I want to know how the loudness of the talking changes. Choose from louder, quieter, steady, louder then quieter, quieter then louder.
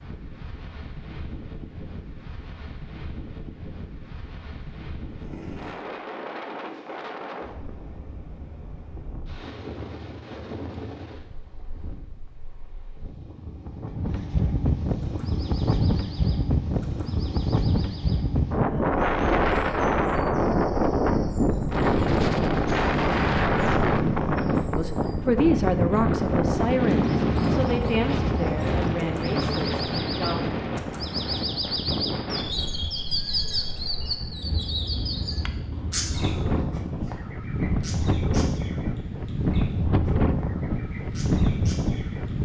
quieter.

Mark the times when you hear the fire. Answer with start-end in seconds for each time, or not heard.
not heard.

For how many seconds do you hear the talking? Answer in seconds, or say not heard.
6 s.